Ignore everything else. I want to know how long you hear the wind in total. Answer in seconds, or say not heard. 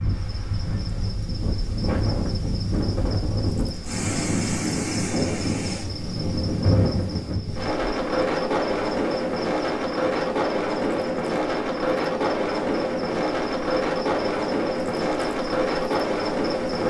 17 s.